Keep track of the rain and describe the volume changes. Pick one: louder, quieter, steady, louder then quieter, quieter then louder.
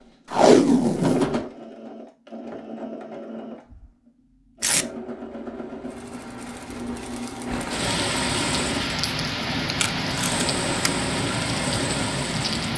louder.